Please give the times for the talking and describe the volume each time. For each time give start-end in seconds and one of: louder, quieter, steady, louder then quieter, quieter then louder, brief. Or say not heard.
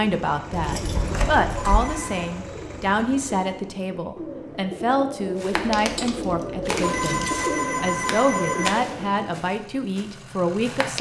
0.0-10.9 steady.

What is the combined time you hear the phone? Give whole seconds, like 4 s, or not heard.
3 s.